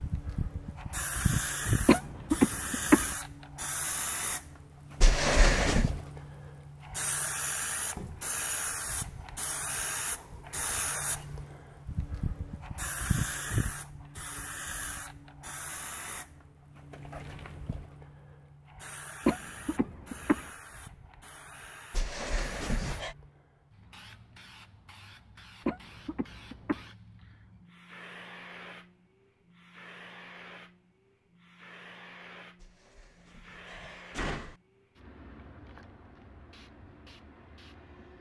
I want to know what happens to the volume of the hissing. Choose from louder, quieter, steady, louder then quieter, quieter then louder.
quieter.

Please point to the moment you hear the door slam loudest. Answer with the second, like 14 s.
5 s.